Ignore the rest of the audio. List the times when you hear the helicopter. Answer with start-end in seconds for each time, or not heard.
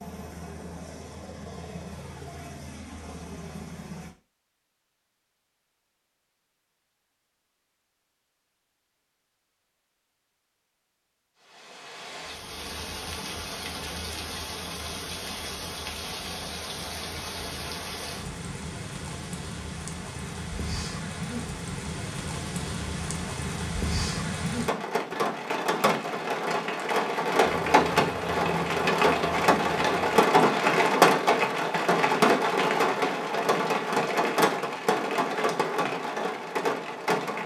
0.0-4.2, 27.4-30.2.